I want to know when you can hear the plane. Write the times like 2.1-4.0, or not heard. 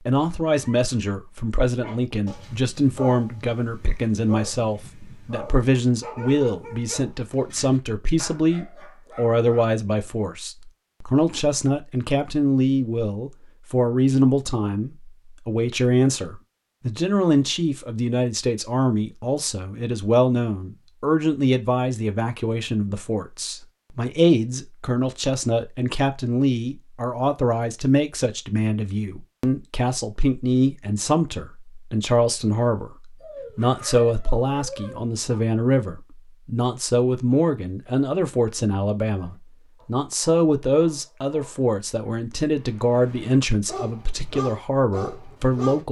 not heard.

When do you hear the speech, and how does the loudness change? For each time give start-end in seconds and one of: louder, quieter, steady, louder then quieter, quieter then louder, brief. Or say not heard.
0.1-45.8 steady.